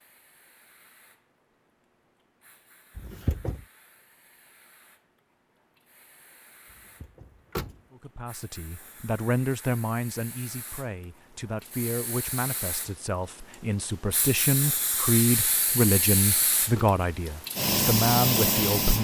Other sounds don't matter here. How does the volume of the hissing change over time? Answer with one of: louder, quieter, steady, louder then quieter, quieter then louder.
louder.